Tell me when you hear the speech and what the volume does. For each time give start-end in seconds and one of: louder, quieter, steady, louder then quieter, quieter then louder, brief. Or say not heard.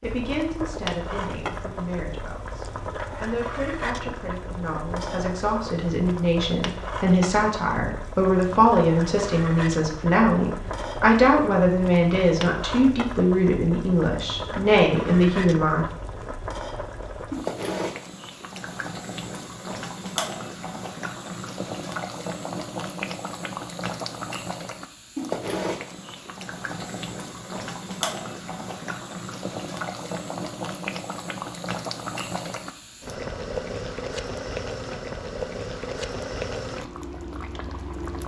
0.0-15.8 louder.